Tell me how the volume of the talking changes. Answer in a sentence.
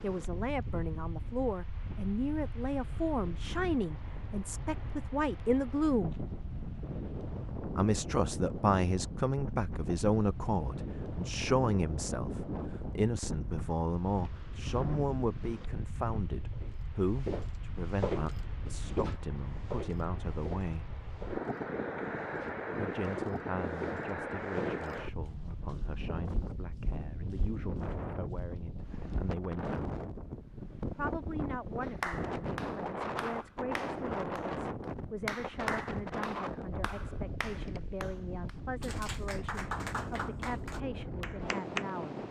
The volume of the talking goes down.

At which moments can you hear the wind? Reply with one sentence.
You can hear the wind from 0.0 to 42.2 s.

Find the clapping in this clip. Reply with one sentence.
The clapping can be heard from 31.8 to 41.9 s.